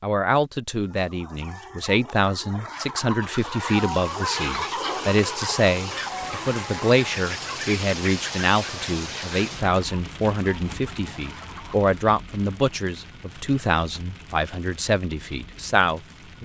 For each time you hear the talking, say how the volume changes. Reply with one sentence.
The talking can be heard from 0.0 to 16.3 s, at a steady volume.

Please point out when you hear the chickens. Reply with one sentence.
You can hear the chickens from 0.8 to 11.9 s.